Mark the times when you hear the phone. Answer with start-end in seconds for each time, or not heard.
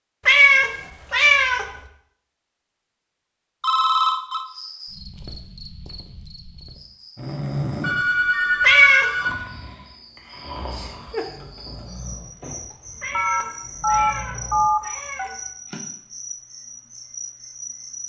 3.6-4.5, 7.8-9.3, 13.1-15.3.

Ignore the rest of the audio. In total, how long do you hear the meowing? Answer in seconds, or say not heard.
4 s.